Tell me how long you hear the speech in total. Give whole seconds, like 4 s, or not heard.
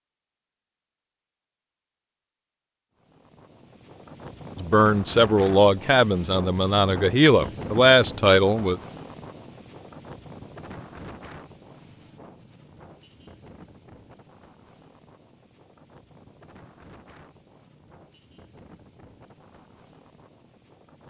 4 s.